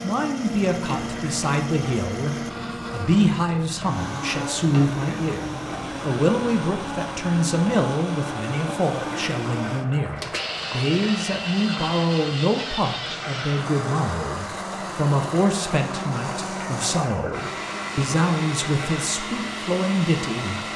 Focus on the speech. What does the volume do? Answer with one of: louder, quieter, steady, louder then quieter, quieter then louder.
steady.